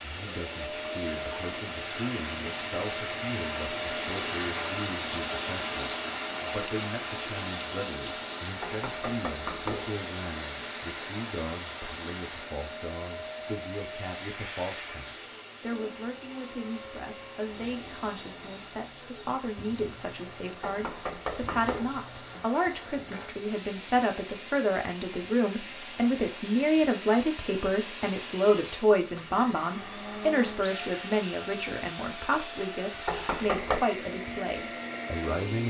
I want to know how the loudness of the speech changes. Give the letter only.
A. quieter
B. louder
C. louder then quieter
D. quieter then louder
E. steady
B.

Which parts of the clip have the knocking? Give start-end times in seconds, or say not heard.
8.6-9.9, 20.6-21.9, 33.0-33.9.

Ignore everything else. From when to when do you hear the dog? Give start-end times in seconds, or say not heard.
not heard.